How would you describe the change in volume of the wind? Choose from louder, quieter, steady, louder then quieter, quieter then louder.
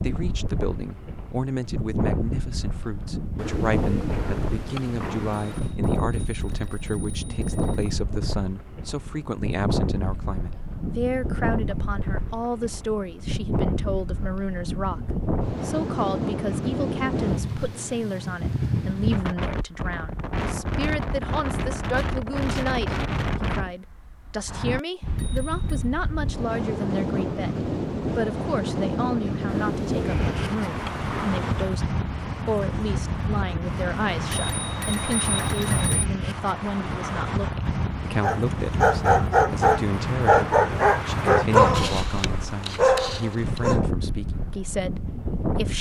steady.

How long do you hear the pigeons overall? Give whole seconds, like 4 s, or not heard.
5 s.